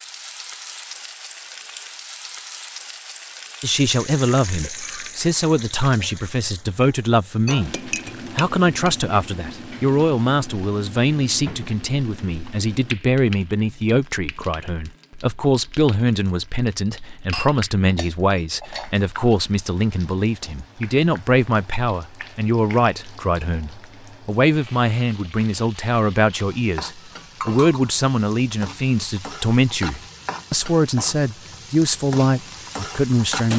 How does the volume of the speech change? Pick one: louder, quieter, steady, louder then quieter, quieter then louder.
steady.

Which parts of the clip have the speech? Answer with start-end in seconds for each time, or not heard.
3.6-33.5.